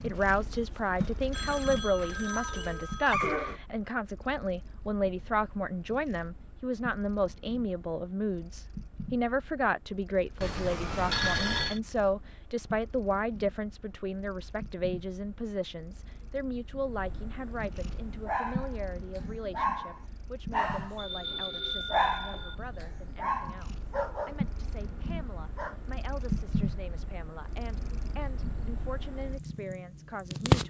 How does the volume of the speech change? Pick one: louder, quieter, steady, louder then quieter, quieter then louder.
quieter.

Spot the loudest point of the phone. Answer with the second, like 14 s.
11 s.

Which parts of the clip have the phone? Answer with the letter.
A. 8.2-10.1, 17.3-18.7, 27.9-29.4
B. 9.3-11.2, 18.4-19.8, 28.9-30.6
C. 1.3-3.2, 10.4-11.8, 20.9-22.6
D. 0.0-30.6
C.